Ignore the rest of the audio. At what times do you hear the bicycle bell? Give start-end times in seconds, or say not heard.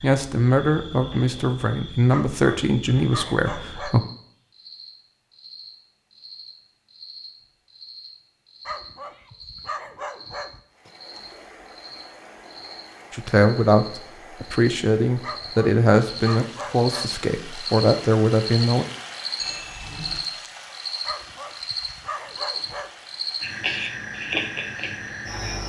19.4-20.2.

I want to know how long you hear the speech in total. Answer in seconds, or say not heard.
10 s.